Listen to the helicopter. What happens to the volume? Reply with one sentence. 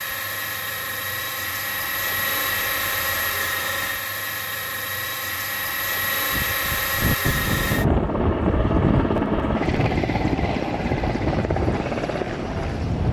The loudness of the helicopter stays about the same.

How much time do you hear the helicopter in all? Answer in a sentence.
The helicopter can be heard for 13 seconds in total.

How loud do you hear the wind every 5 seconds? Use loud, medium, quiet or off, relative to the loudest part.
off, loud, medium.